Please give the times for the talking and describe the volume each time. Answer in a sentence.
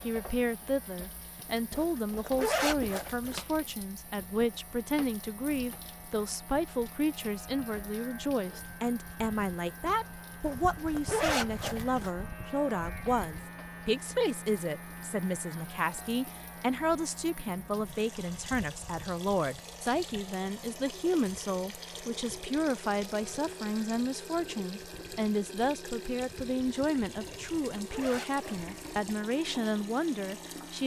You can hear the talking from 0.0 to 30.8 s, at a steady volume.